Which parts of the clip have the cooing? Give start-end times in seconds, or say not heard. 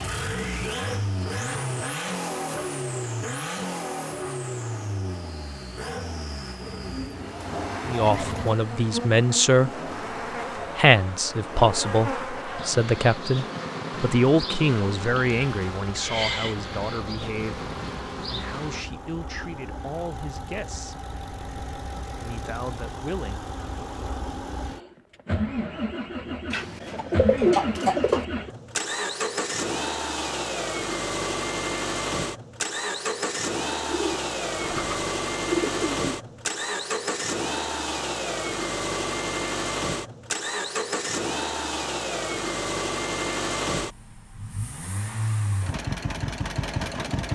6.8-8.6, 26.5-28.2, 33.8-36.0.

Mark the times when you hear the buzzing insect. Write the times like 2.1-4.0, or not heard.
8.6-18.9.